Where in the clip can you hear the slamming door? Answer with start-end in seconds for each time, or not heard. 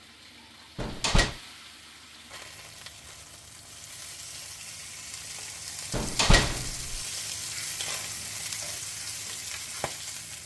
0.8-1.4, 5.9-7.0.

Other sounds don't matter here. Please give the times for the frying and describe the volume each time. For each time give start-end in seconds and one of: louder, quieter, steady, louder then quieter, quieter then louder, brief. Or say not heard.
0.0-10.4 louder.